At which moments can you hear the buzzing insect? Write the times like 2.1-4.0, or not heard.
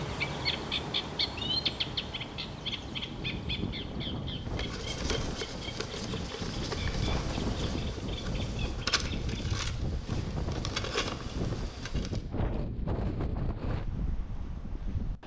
4.4-12.2.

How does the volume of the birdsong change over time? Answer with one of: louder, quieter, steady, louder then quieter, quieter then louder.
quieter.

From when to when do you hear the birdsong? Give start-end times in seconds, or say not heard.
0.0-9.6.